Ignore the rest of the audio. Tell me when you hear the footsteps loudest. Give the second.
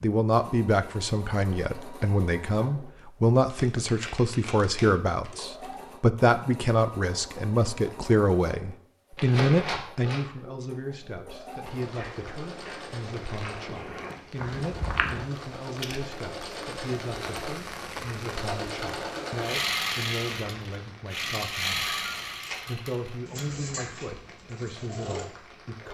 15 s.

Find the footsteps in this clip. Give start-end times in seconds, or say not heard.
11.8-15.2.